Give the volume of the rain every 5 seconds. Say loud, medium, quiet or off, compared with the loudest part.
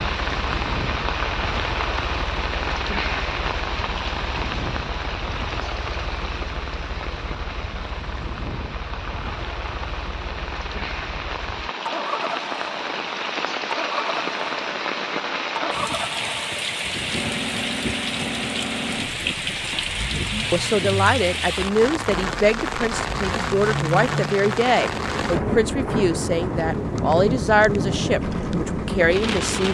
loud, medium, loud, loud, loud, loud.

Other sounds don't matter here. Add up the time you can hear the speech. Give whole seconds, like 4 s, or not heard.
9 s.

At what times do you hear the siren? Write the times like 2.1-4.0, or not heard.
not heard.